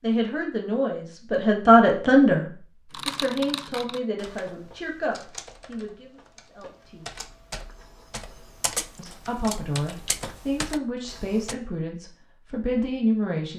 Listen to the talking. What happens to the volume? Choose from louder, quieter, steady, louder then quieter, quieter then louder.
quieter then louder.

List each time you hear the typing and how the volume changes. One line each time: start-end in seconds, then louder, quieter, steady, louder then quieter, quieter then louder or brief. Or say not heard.
2.9-11.6 quieter then louder.